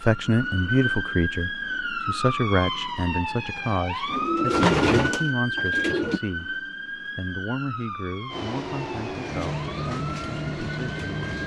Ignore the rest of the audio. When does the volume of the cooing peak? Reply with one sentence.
The loudest moment of the cooing is at 5 seconds.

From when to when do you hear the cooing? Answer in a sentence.
The cooing can be heard from 4.0 to 6.2 s.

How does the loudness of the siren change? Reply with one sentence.
The loudness of the siren goes down.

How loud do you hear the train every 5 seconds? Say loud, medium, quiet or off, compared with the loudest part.
off, loud, loud.